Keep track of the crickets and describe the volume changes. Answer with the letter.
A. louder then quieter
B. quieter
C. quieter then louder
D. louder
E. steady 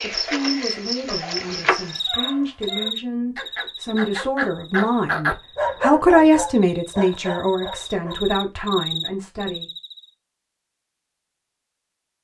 C.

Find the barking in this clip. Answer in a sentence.
You can hear the barking from 1.8 to 8.3 s.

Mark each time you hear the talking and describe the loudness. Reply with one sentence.
You can hear the talking from 0.0 to 9.7 s, getting louder then quieter.